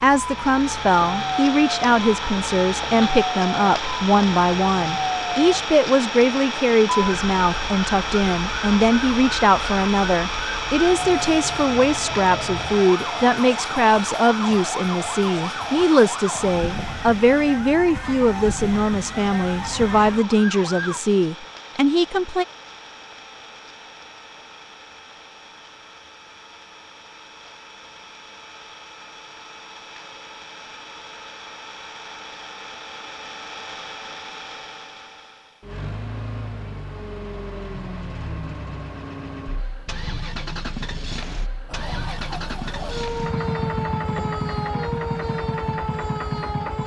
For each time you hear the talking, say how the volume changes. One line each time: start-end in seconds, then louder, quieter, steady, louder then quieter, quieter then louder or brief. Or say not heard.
0.0-22.4 steady.